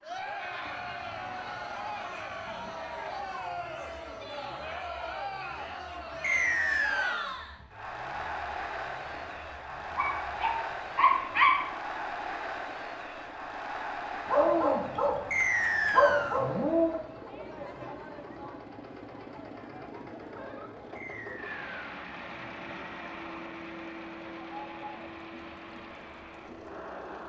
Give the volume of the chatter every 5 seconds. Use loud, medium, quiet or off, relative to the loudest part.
loud, loud, loud, medium, medium, medium.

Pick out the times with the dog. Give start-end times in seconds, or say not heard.
9.9-11.7, 14.2-17.0.